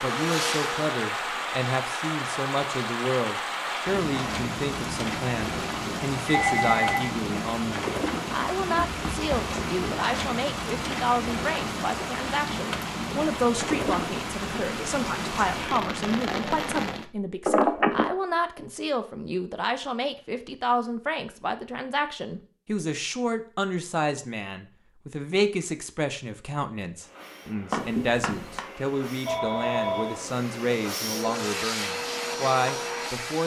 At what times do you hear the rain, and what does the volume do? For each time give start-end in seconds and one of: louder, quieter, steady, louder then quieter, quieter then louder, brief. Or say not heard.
0.0-17.1 steady.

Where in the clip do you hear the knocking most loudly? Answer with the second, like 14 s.
28 s.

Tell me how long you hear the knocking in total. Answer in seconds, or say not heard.
2 s.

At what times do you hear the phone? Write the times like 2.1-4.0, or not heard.
5.8-7.1, 17.4-18.1, 29.2-30.2.